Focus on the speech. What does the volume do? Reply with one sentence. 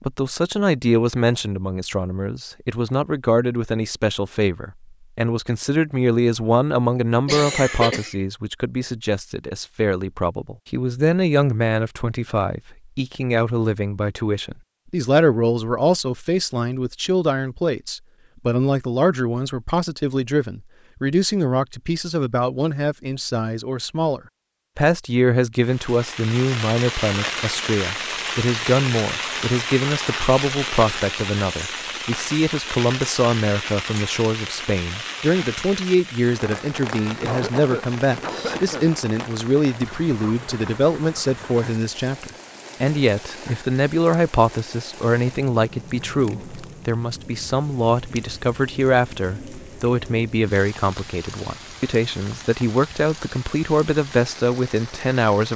The volume of the speech stays about the same.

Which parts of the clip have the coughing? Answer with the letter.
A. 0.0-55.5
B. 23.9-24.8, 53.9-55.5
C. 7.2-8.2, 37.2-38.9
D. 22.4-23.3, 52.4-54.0
C.